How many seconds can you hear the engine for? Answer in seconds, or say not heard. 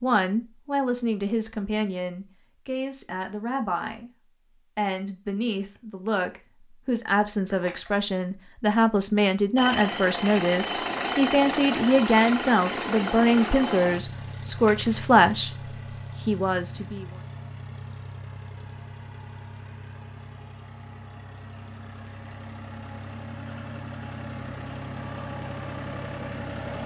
17 s.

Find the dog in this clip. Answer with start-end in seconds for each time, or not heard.
not heard.